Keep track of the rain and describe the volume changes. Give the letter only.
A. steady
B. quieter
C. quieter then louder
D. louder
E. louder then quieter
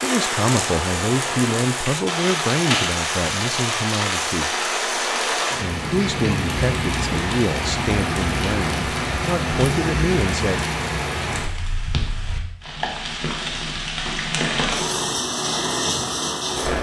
A.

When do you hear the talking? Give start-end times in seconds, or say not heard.
0.0-4.5, 5.6-10.7.